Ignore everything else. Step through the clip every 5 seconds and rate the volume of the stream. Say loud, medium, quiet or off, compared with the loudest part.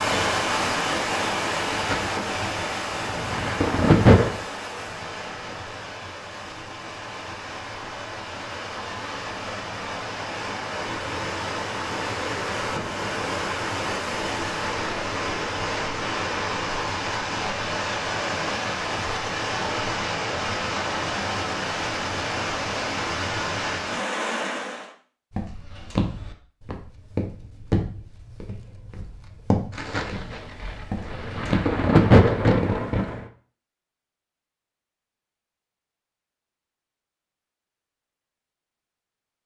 loud, medium, loud, loud, loud, off, off, off.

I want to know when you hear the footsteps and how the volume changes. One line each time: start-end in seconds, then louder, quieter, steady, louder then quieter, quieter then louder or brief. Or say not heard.
25.3-32.9 quieter then louder.